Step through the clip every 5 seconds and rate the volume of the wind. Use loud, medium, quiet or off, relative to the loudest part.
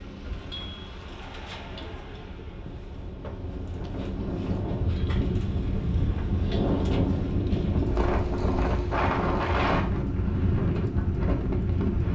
medium, loud, loud.